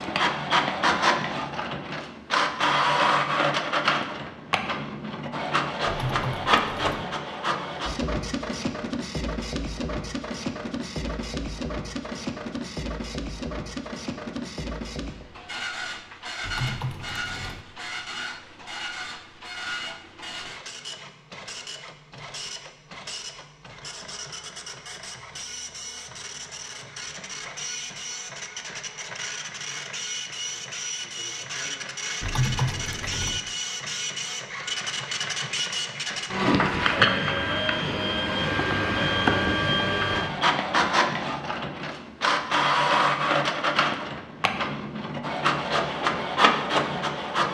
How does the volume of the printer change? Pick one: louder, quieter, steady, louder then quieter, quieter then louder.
quieter then louder.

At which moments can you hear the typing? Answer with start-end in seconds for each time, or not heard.
5.8-7.0, 16.4-17.6, 32.2-33.4.